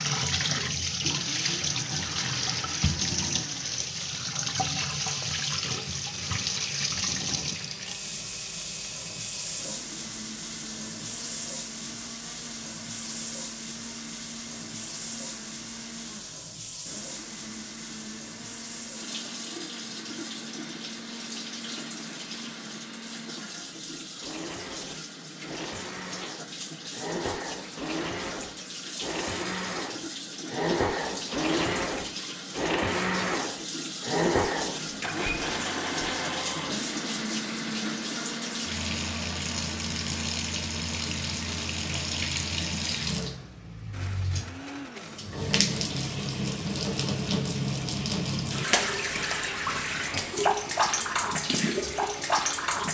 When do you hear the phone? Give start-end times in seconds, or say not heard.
not heard.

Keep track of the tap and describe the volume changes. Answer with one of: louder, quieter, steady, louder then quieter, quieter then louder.
quieter then louder.